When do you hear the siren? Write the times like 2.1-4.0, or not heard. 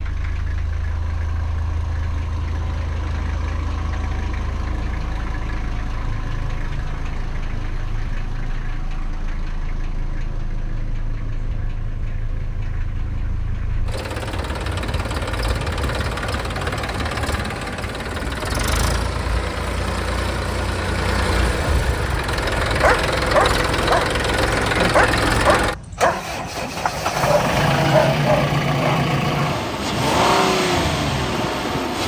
not heard.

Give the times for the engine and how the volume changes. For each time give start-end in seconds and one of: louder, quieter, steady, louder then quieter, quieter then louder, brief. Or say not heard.
0.0-32.0 louder.